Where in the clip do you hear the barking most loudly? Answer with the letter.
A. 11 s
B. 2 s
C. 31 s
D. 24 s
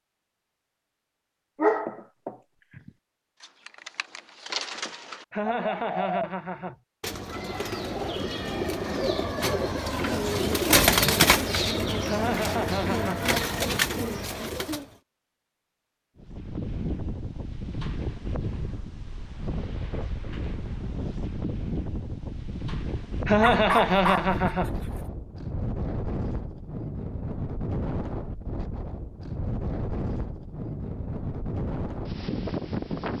B.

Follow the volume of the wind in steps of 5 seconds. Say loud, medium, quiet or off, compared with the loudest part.
off, off, off, loud, loud, loud, loud.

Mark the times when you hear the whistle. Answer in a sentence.
The whistle can't be heard in this clip.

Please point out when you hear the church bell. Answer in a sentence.
The church bell can't be heard in this clip.